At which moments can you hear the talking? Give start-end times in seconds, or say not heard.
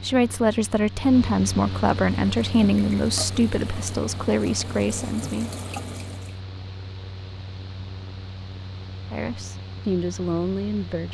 0.0-5.5, 9.1-11.0.